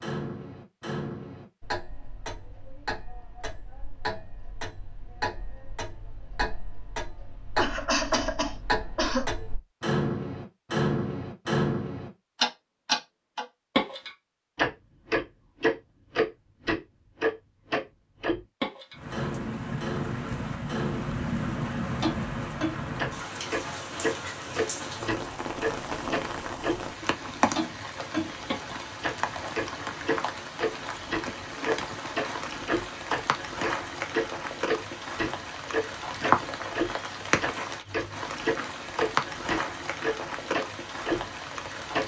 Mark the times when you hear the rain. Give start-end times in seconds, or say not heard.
18.9-42.0.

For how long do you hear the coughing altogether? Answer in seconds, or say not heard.
2 s.